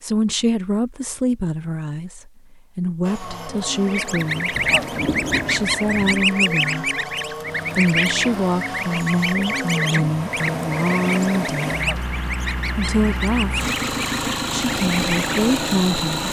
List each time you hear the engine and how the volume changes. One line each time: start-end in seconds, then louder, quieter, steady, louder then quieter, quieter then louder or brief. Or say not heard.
3.0-16.2 louder.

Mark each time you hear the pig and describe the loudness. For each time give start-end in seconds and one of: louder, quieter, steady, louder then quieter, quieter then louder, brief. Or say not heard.
not heard.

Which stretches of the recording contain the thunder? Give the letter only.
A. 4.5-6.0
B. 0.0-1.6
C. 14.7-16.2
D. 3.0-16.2
A.